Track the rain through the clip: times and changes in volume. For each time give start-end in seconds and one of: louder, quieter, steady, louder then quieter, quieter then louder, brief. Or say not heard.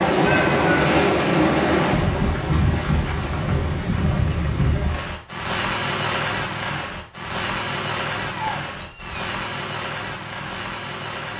0.0-11.3 quieter.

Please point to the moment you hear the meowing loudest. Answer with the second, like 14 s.
1 s.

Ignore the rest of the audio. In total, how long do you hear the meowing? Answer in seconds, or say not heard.
2 s.